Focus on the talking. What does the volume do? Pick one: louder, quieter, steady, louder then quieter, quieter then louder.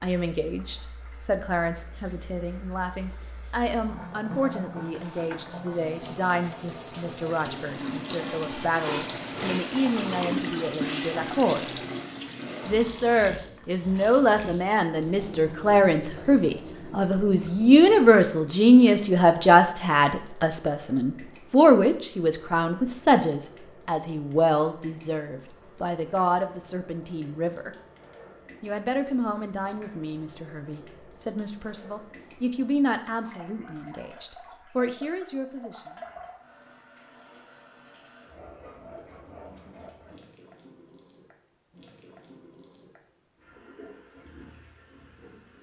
louder then quieter.